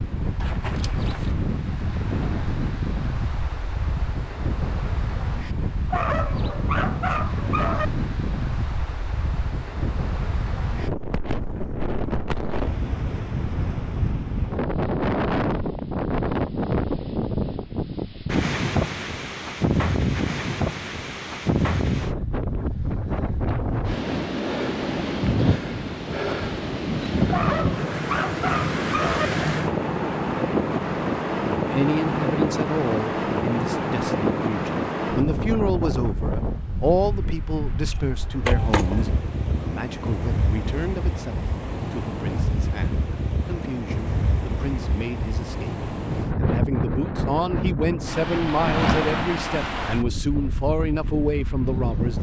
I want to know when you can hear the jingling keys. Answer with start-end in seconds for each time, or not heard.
0.4-1.4, 37.8-39.2.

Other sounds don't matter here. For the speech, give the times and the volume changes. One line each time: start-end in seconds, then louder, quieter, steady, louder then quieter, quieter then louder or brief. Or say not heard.
31.6-52.1 quieter then louder.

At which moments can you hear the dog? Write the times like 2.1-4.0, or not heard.
5.9-7.9, 27.3-29.3.